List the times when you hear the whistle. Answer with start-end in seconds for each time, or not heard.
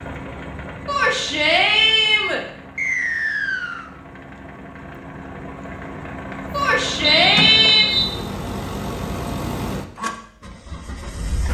2.8-3.9, 7.0-8.1.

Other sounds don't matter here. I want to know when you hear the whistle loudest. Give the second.
8 s.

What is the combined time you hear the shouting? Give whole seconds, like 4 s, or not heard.
3 s.